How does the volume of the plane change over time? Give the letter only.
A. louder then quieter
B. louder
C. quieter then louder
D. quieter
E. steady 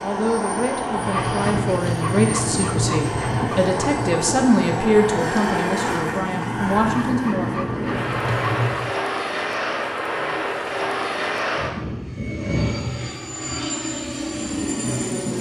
E.